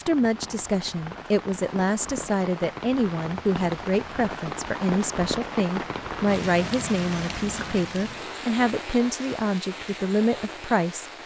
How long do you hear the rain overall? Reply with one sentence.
The rain can be heard for 11 seconds in total.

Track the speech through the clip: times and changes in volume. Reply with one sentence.
The speech can be heard from 0.0 to 11.1 s, at a steady volume.